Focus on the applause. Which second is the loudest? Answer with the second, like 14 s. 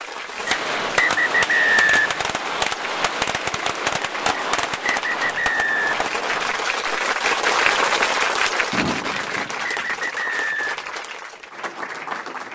8 s.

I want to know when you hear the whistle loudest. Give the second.
2 s.